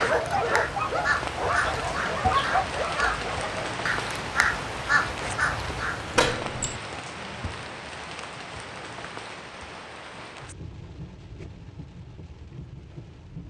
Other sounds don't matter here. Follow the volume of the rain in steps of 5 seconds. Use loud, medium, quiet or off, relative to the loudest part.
loud, loud, medium.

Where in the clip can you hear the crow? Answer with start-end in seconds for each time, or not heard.
0.2-6.3.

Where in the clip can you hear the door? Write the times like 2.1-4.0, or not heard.
6.2-6.8.